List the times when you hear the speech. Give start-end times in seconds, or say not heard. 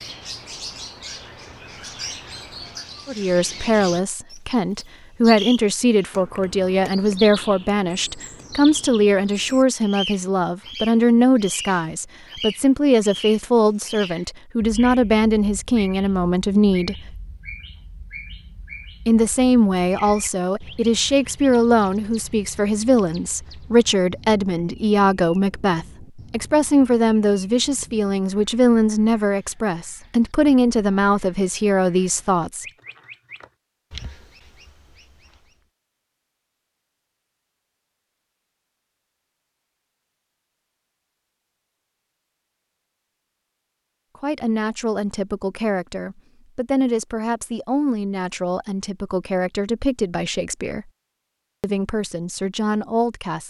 3.0-17.1, 19.1-32.6, 44.2-50.9, 51.6-53.4.